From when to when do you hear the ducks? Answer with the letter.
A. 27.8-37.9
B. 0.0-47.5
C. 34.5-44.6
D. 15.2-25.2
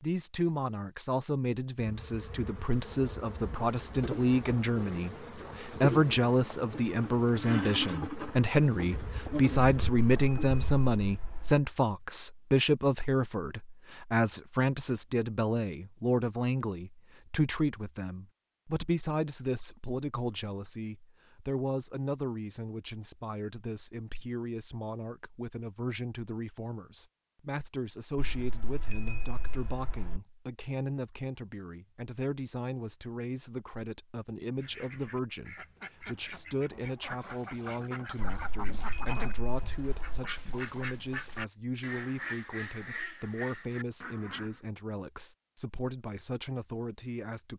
C.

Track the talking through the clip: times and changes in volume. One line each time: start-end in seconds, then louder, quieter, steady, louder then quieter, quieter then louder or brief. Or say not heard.
0.0-47.5 quieter.